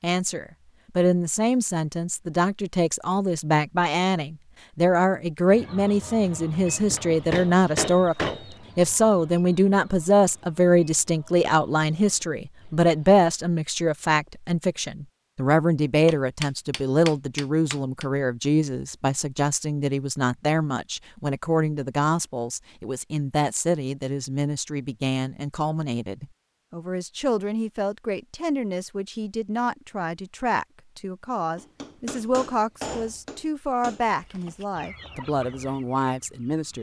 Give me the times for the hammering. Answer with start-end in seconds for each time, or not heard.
6.7-8.6, 16.1-18.1, 31.6-34.0.